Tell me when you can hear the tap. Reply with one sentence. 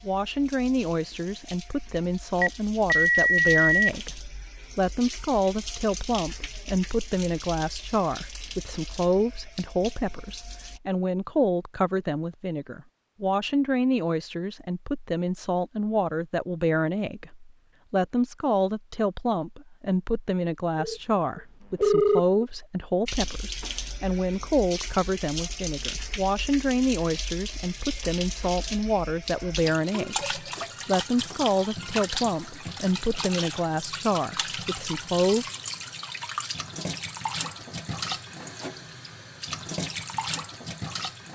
The tap can be heard from 0.0 to 10.8 s and from 23.1 to 41.2 s.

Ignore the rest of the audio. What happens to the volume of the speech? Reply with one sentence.
The loudness of the speech stays about the same.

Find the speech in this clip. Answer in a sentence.
The speech can be heard from 0.1 to 35.5 s.